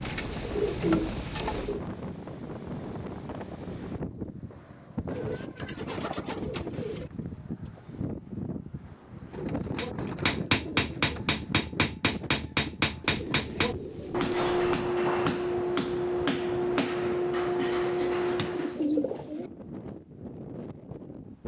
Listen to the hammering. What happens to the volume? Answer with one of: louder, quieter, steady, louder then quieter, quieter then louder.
steady.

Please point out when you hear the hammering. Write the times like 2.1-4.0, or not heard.
9.8-18.9.